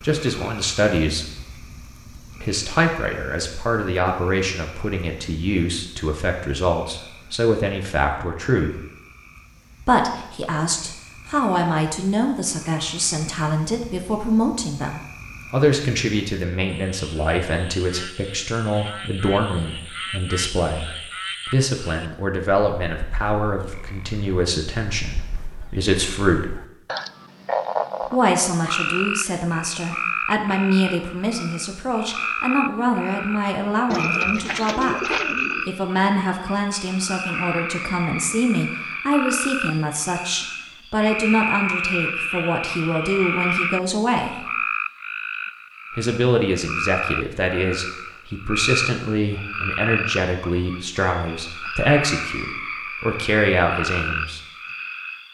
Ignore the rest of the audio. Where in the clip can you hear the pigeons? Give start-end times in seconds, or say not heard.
33.9-35.7.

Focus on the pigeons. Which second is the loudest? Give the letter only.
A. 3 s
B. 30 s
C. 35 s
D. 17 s
C.